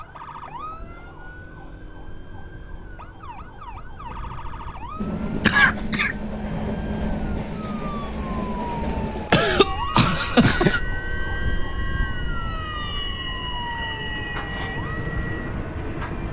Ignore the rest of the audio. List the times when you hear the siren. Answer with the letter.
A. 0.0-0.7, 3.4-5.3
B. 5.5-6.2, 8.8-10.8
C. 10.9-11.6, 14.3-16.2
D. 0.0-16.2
D.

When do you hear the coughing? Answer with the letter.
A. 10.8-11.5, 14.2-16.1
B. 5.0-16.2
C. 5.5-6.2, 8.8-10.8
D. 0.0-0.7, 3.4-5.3
C.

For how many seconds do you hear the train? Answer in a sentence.
The train can be heard for 11 seconds in total.